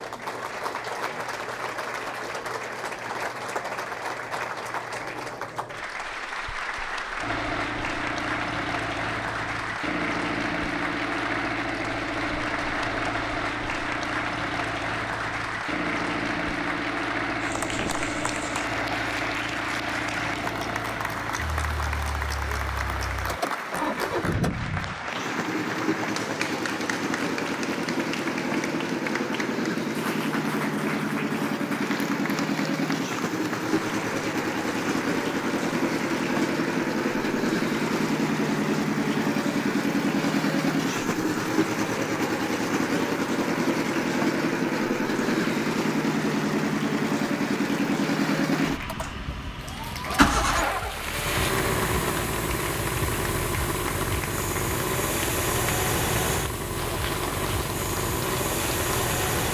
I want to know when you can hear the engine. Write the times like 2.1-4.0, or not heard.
7.2-59.4.